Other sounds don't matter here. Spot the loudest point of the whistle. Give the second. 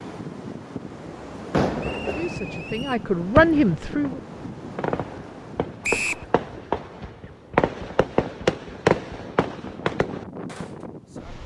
6 s.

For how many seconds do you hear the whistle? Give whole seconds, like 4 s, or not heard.
2 s.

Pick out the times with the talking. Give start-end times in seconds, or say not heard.
2.1-4.2.